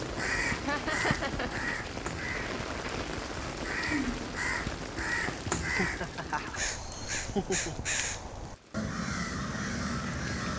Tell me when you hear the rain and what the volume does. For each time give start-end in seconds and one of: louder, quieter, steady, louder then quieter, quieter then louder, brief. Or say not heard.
0.0-10.5 quieter.